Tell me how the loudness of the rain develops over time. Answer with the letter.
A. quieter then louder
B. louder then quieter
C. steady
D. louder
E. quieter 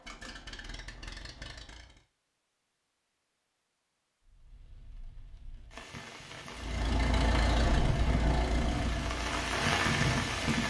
D.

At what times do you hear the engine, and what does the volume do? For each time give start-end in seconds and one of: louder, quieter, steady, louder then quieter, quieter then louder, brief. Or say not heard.
0.0-2.0 brief
6.5-10.6 quieter.